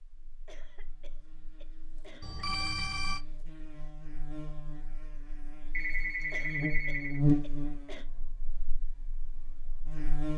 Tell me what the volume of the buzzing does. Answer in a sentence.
The volume of the buzzing goes up, then down.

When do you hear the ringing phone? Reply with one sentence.
The ringing phone can be heard from 2.2 to 3.2 s and from 5.7 to 7.2 s.